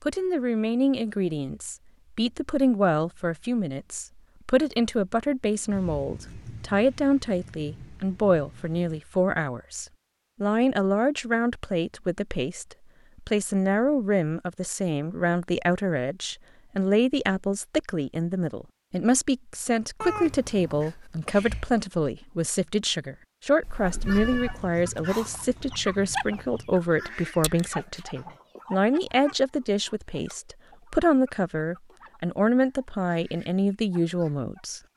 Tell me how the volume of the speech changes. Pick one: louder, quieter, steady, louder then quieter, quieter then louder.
steady.